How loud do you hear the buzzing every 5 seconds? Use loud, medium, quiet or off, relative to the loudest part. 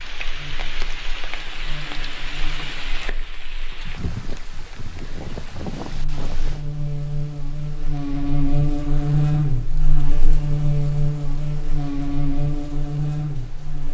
quiet, loud, loud.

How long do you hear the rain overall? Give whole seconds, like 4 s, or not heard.
14 s.